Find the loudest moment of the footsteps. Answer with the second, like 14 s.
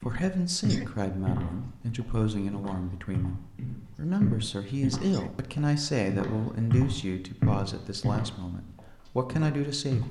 7 s.